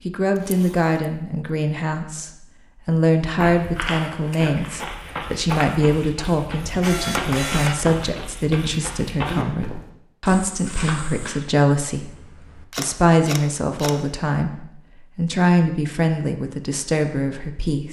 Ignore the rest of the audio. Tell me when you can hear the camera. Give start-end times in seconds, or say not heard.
0.3-0.9, 6.8-7.8, 11.9-13.9.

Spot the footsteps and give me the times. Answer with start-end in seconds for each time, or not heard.
3.4-11.3.